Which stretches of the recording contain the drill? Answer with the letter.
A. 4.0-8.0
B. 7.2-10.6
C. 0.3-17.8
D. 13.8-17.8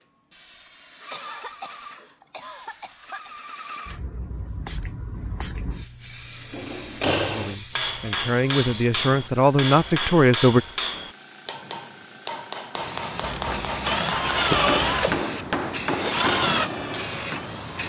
D.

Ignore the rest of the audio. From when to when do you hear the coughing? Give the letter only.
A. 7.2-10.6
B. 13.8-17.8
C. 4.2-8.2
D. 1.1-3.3
D.